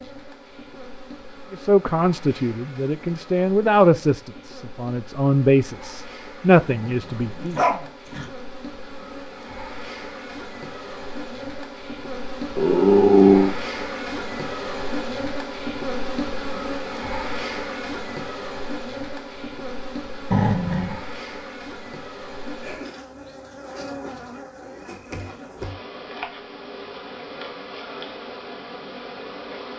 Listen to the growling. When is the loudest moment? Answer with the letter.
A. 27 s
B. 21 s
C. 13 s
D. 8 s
C.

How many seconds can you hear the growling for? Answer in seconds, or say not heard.
3 s.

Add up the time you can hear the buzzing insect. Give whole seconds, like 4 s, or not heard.
30 s.